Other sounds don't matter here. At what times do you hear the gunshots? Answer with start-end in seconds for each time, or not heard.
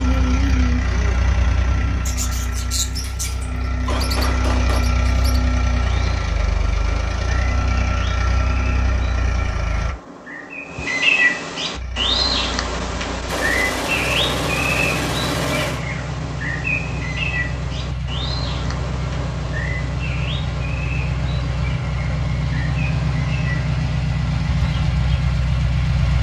3.0-4.8, 13.2-15.8.